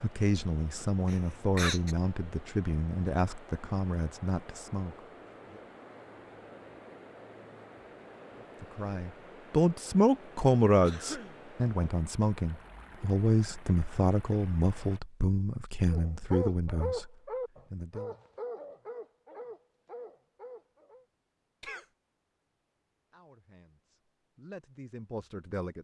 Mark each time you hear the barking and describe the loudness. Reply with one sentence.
You can hear the barking from 15.9 to 21.1 s, getting quieter.